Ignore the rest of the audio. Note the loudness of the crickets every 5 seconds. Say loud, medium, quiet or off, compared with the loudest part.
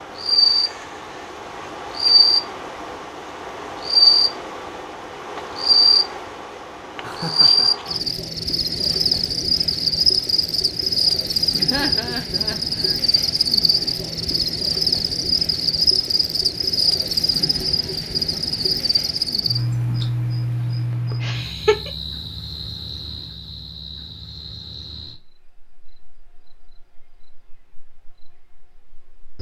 loud, loud, loud, loud, medium, quiet.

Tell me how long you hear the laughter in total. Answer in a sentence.
The laughter can be heard for 3 seconds in total.